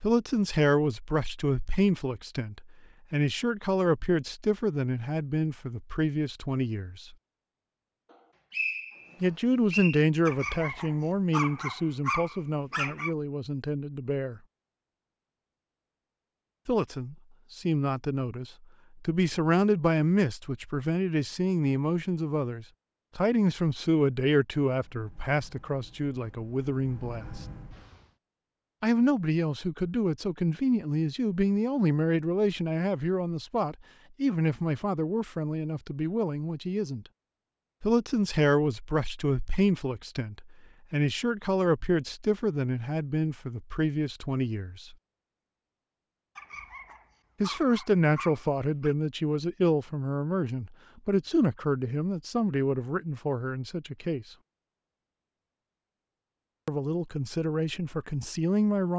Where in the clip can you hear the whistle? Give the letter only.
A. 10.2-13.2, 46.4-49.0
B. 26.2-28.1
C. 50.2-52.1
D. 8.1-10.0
D.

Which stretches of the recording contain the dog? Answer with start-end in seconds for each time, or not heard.
10.2-13.2, 46.4-49.0.